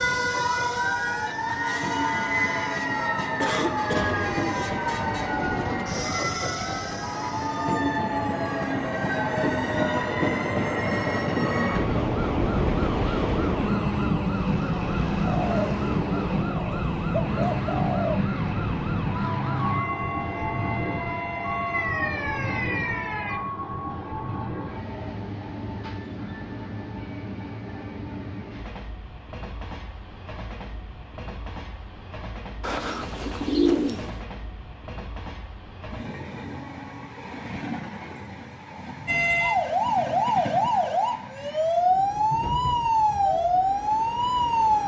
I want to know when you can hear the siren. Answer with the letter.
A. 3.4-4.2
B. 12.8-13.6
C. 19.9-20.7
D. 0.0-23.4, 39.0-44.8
D.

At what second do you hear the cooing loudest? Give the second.
34 s.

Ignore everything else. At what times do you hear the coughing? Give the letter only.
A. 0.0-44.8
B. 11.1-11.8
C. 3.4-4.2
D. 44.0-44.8
C.